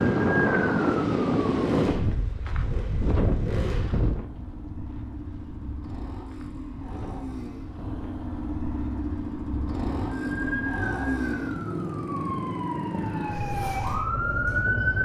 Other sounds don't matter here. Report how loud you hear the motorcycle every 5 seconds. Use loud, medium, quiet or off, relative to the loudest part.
medium, loud, loud.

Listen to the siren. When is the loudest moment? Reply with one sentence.
The volume of the siren peaks at 15 seconds.